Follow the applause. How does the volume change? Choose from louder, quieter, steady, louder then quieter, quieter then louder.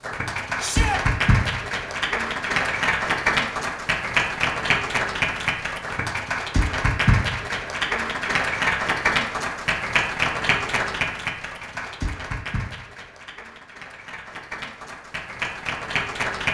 quieter.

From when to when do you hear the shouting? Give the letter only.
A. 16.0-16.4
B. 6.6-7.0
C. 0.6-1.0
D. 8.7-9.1
C.